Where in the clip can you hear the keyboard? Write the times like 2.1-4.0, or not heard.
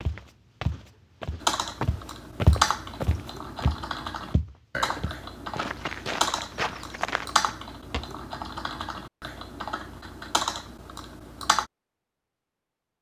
1.4-11.7.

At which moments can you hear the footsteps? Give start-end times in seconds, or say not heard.
0.0-8.1.